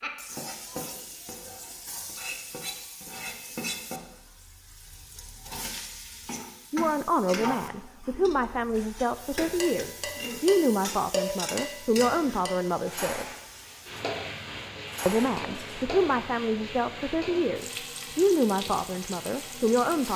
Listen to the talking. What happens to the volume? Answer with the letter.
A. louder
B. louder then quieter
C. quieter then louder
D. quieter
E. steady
E.